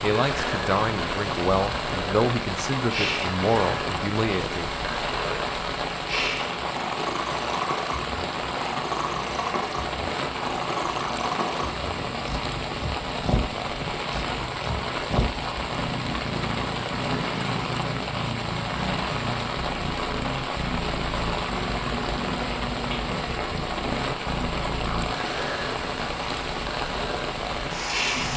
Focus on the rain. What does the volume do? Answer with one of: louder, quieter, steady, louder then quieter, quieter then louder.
steady.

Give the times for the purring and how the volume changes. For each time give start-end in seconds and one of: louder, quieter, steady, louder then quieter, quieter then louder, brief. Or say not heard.
0.1-28.3 steady.